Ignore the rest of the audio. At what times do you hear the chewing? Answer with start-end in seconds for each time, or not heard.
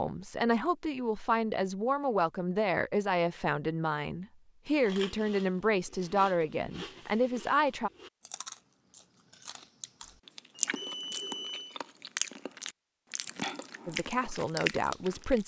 4.8-15.4.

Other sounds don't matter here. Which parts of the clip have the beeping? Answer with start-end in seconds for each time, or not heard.
10.6-11.8.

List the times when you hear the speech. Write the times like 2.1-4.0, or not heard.
0.0-7.9, 13.8-15.4.